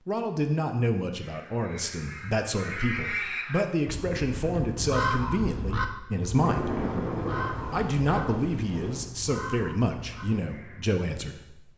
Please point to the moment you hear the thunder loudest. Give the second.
7 s.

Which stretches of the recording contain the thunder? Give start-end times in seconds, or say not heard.
6.3-9.1.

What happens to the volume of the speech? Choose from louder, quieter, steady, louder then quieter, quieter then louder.
steady.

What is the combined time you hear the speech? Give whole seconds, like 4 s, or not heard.
11 s.